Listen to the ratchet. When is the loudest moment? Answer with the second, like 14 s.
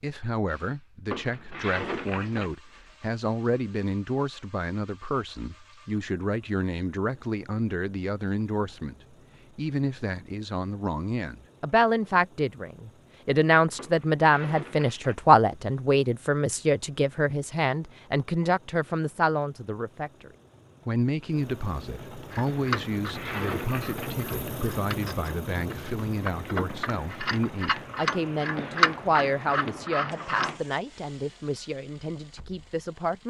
29 s.